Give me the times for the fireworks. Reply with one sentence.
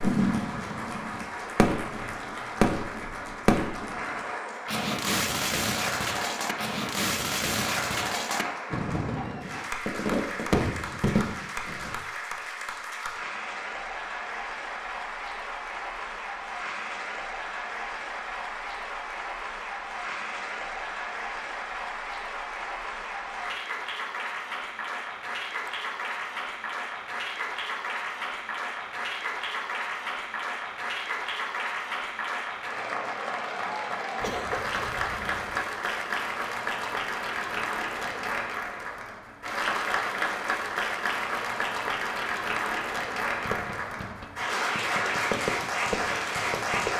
You can hear the fireworks from 0.0 to 11.9 s and from 43.4 to 46.9 s.